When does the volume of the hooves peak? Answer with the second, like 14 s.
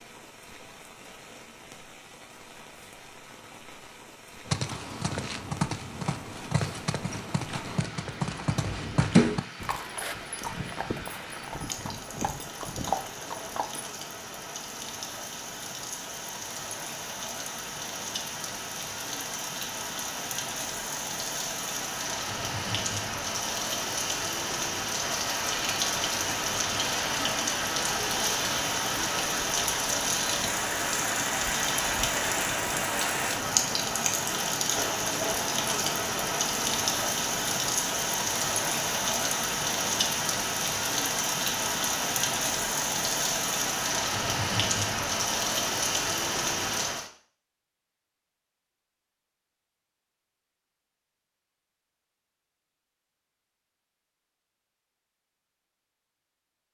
9 s.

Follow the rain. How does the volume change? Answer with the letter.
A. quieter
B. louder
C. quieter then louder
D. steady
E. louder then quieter
B.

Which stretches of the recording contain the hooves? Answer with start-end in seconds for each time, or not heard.
4.5-13.9.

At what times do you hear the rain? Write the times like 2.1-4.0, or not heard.
0.0-47.1.